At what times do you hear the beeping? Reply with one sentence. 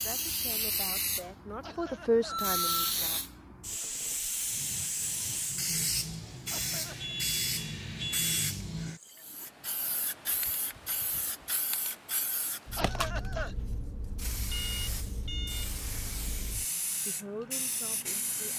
You can hear the beeping from 2.2 to 3.0 s, from 6.5 to 8.5 s and from 14.5 to 15.8 s.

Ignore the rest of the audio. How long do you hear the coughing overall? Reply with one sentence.
You can hear the coughing for 2 seconds altogether.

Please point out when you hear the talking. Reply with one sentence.
You can hear the talking from 0.0 to 3.2 s and from 17.1 to 18.5 s.